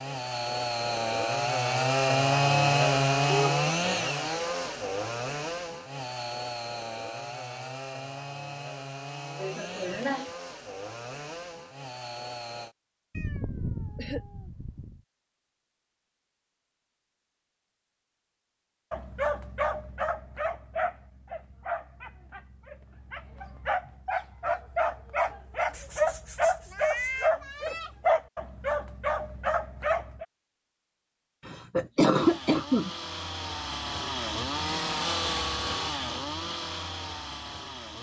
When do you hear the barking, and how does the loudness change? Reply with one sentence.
You can hear the barking from 18.9 to 30.2 s, getting quieter then louder.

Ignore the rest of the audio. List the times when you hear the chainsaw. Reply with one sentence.
The chainsaw can be heard from 0.0 to 12.8 s and from 32.1 to 37.9 s.